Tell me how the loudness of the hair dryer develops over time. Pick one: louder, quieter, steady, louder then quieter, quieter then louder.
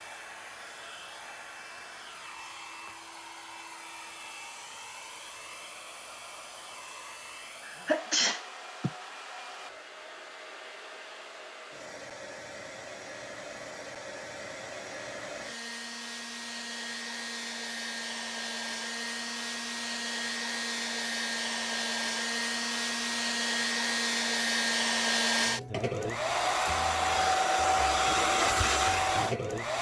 louder.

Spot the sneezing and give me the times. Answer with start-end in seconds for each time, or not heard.
7.7-8.9.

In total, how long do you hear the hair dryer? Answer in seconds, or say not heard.
30 s.